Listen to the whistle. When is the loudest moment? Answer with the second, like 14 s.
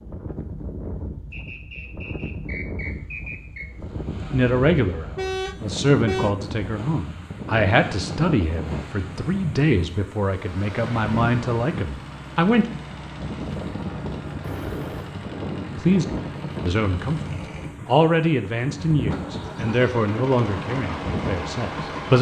3 s.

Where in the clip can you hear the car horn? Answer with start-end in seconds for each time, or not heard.
5.2-6.3, 14.4-15.1.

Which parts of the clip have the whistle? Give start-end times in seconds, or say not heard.
1.3-3.7.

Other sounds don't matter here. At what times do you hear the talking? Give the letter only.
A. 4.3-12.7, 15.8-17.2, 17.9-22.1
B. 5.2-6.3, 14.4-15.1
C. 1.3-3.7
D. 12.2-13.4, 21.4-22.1
A.